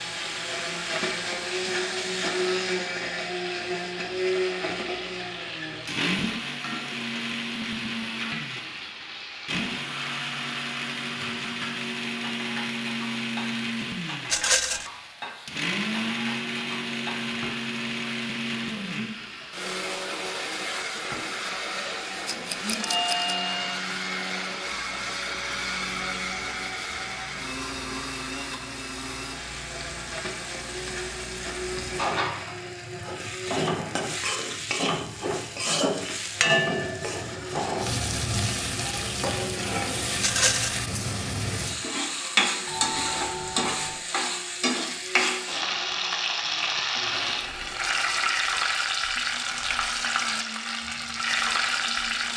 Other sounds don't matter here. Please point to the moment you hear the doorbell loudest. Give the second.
23 s.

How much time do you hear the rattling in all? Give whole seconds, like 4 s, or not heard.
2 s.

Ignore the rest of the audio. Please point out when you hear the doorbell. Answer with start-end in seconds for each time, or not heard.
22.8-23.8, 42.6-44.0.